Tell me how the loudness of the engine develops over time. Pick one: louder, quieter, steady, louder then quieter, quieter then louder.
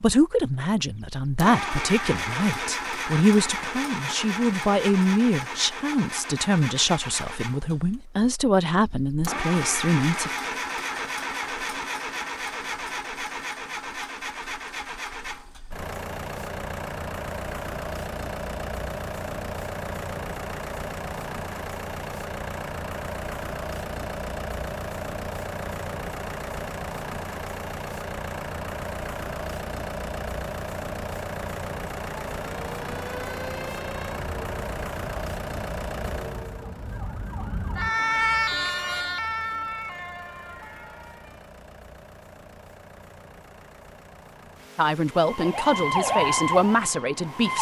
quieter.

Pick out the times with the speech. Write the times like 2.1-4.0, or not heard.
0.0-10.3, 44.8-47.5.